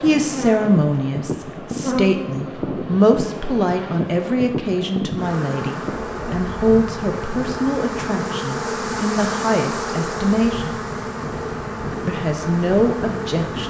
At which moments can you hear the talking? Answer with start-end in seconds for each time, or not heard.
0.0-10.8, 12.1-13.6.